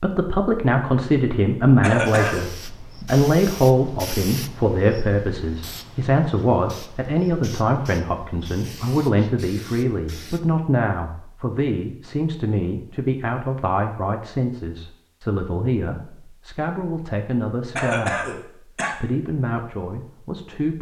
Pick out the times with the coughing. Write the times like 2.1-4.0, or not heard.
1.8-2.5, 17.8-18.9.